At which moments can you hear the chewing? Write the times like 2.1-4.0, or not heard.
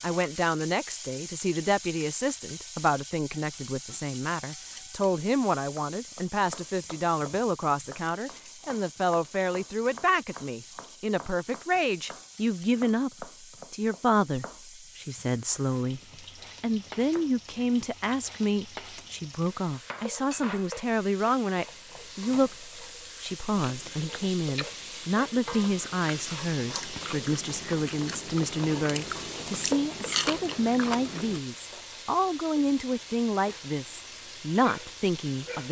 23.6-31.4.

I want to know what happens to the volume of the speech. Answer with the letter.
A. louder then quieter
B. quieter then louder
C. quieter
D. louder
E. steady
E.